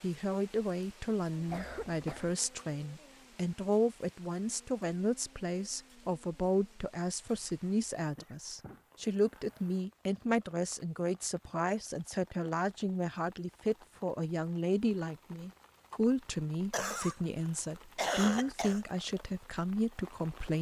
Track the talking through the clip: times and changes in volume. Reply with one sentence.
The talking can be heard from 0.0 to 20.5 s, at a steady volume.